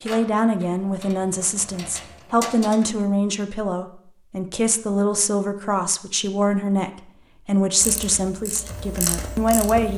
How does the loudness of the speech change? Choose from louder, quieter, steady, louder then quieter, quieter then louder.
steady.